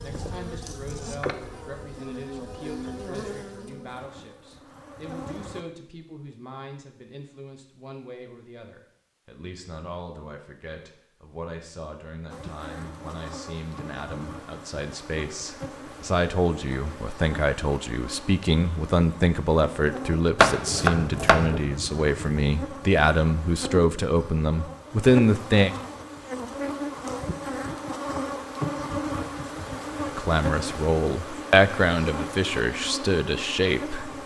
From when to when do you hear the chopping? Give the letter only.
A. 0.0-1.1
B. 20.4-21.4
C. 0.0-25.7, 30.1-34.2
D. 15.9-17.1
B.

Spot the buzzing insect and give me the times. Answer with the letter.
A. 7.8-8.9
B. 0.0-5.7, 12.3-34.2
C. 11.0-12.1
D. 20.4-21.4
B.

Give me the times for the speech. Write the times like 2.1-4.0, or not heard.
0.0-25.7, 30.1-34.2.